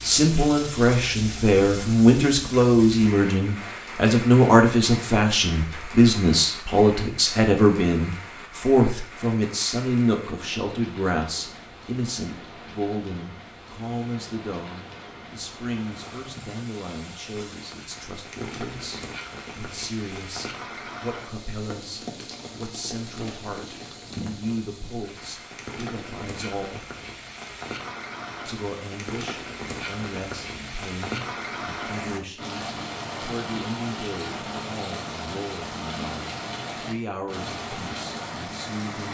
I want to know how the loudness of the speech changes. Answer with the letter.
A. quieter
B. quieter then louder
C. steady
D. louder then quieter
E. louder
A.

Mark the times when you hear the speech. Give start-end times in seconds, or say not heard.
0.0-26.9, 28.4-39.0.